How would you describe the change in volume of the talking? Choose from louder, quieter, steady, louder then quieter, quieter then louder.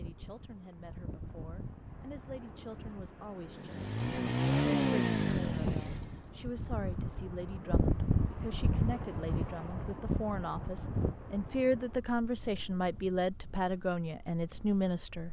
louder.